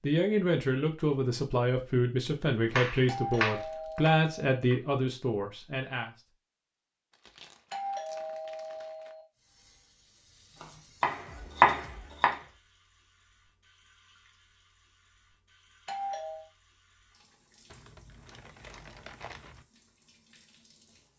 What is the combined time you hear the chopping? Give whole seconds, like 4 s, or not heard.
4 s.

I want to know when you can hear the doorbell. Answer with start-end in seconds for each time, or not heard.
3.0-4.5, 7.7-9.2, 15.8-16.4.